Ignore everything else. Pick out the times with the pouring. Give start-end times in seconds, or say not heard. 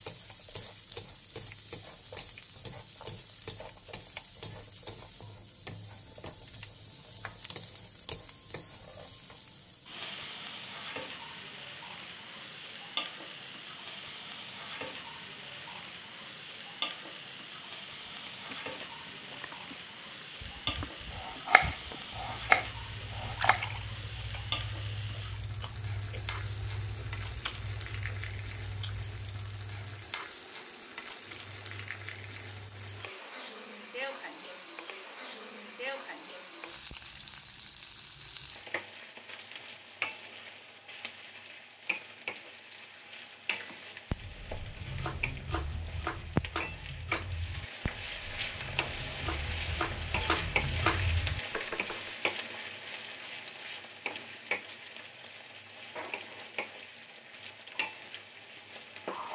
23.2-24.0.